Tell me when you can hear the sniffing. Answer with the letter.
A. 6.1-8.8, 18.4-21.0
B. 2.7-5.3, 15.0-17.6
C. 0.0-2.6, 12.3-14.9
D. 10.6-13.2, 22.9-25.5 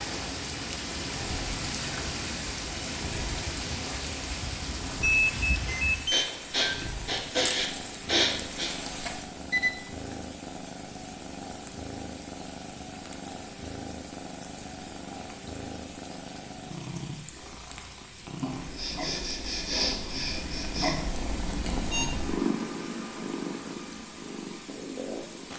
A.